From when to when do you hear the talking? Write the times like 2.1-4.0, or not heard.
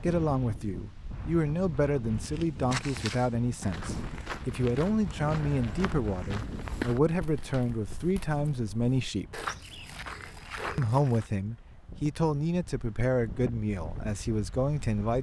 0.0-9.4, 10.8-15.1.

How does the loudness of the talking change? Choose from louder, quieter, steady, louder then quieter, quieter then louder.
steady.